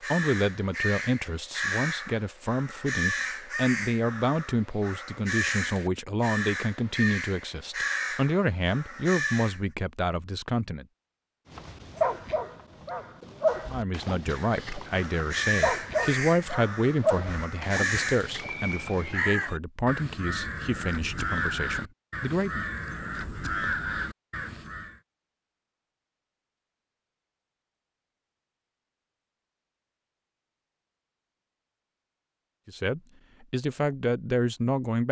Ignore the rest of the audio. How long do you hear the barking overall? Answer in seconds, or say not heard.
8 s.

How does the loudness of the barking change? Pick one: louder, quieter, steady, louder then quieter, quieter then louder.
quieter.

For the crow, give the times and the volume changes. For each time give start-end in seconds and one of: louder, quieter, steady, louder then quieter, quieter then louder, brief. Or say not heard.
0.0-9.6 steady
14.2-25.0 steady.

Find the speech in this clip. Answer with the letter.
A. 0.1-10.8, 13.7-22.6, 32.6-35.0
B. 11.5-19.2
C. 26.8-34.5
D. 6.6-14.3
A.